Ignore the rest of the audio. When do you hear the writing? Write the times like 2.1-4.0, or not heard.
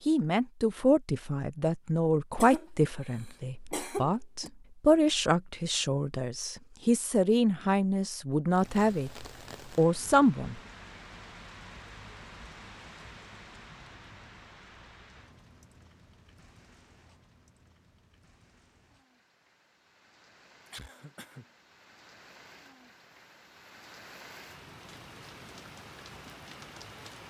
not heard.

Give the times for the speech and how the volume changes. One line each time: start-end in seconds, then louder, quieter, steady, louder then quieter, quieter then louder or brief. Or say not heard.
0.1-10.6 steady.